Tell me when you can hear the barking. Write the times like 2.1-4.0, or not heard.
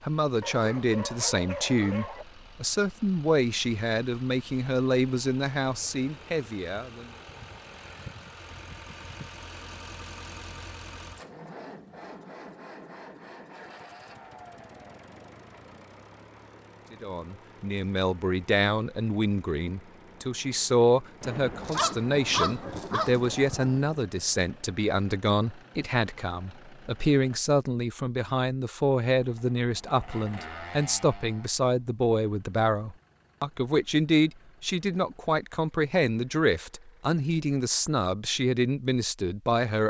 0.4-2.2, 21.6-23.7.